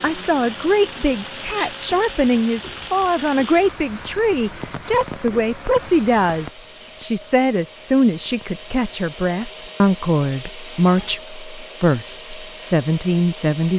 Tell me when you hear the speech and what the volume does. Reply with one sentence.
You can hear the speech from 0.0 to 13.7 s, at a steady volume.